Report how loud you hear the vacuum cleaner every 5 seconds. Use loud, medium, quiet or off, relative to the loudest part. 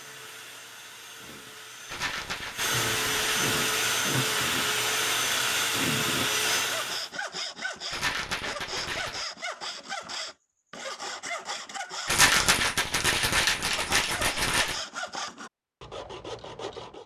loud, loud, off, off.